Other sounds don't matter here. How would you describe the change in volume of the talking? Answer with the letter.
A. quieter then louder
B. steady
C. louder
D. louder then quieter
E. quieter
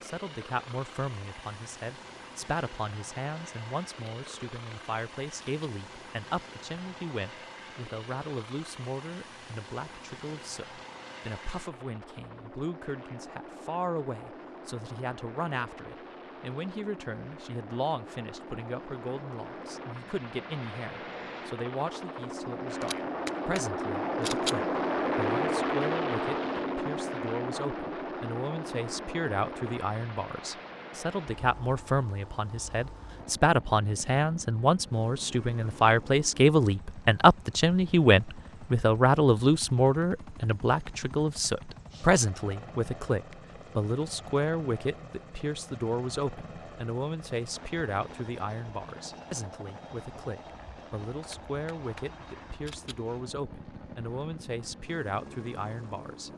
D.